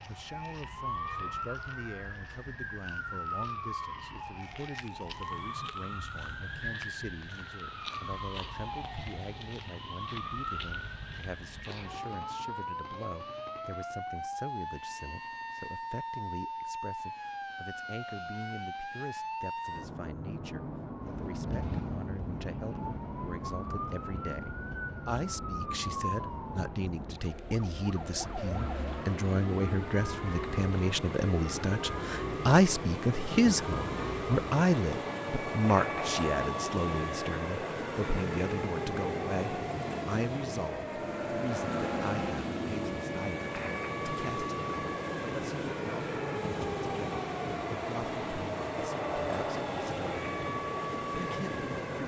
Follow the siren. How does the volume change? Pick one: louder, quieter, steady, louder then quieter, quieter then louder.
steady.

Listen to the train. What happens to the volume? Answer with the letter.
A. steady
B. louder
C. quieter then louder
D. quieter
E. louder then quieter
B.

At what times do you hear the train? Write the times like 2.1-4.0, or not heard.
20.9-52.0.